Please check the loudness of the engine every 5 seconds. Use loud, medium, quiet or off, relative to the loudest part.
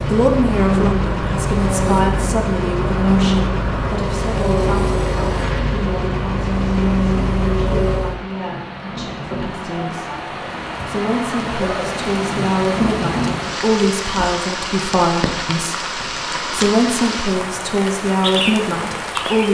loud, loud, off, off.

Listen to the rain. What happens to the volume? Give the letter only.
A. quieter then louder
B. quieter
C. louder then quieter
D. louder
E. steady
D.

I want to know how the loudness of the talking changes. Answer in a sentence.
The volume of the talking goes down, then up.